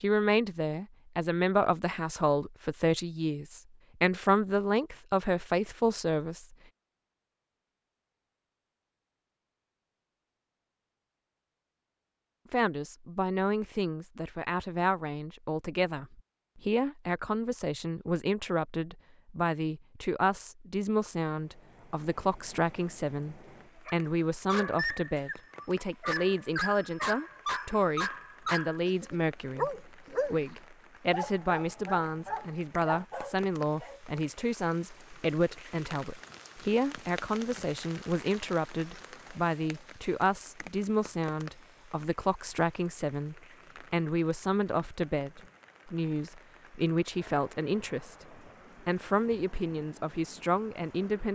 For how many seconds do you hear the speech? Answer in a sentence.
You can hear the speech for 45 seconds altogether.